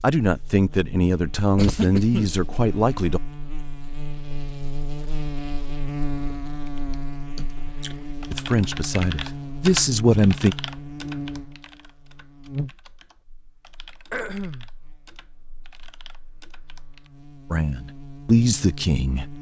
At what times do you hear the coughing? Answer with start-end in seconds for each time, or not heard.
1.6-2.3, 7.3-8.0, 14.1-14.7.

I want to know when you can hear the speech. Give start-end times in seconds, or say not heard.
0.0-3.2, 8.3-10.6, 17.5-19.3.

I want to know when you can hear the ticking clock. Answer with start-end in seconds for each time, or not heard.
not heard.